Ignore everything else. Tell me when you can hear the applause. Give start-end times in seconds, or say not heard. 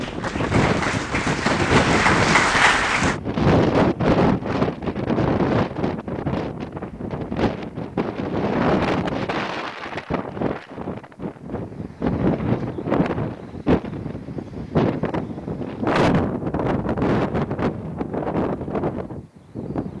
0.0-3.2.